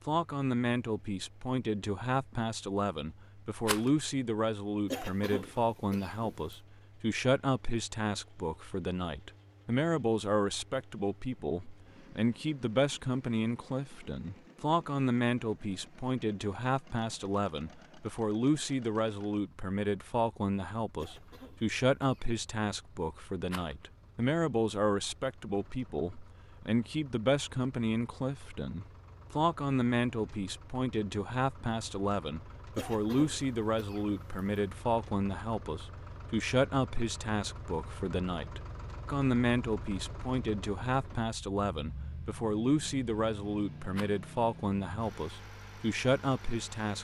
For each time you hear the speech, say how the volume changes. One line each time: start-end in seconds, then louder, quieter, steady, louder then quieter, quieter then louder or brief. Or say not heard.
0.1-46.9 steady.